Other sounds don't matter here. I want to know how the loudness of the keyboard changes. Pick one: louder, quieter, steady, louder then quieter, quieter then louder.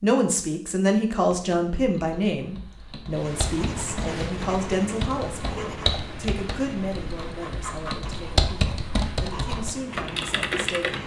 louder.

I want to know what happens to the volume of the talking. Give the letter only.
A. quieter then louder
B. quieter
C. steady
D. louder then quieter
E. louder
B.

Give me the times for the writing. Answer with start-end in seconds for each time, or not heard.
3.1-11.0.